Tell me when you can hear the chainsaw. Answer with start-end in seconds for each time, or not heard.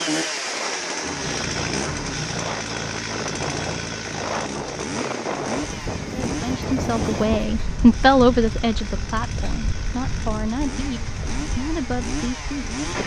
0.0-13.0.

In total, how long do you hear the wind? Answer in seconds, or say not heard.
13 s.